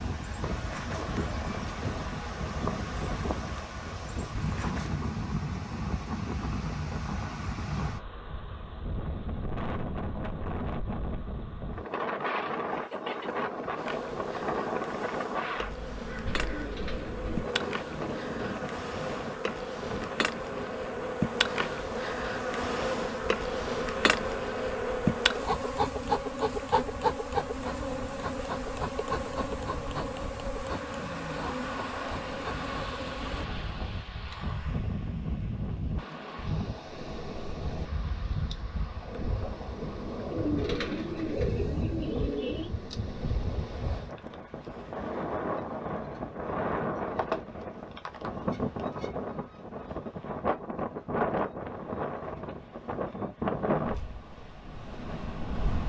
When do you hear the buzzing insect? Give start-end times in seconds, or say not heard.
0.1-5.0, 13.6-33.5.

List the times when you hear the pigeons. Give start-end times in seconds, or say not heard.
16.4-18.4, 40.3-42.7.